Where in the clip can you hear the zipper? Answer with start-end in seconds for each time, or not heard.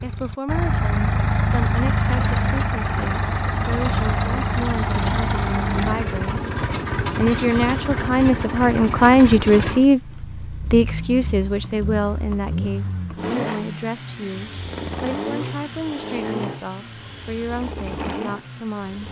not heard.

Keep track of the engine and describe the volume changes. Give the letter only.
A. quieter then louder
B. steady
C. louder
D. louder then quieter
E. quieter
E.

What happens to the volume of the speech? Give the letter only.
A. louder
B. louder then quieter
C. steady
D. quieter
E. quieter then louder
B.